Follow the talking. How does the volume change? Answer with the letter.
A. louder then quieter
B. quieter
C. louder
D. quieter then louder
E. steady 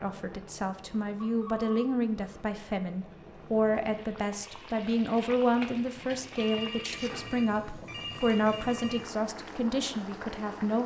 E.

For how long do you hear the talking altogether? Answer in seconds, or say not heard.
11 s.